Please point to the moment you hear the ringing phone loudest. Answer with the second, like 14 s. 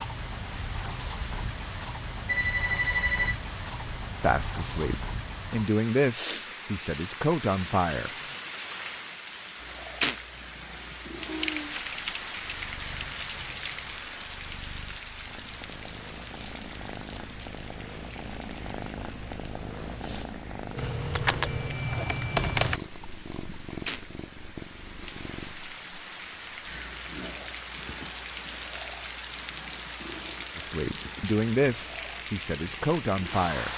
3 s.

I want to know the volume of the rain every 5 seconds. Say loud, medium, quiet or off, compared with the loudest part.
loud, loud, loud, medium, medium, loud, loud.